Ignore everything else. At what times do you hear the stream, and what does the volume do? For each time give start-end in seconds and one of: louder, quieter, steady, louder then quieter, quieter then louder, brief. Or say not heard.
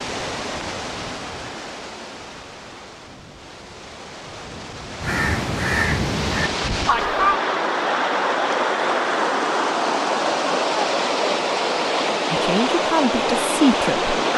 0.0-14.3 louder.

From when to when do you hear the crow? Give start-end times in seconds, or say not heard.
5.0-7.4.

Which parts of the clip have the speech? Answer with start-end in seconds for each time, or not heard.
12.3-14.2.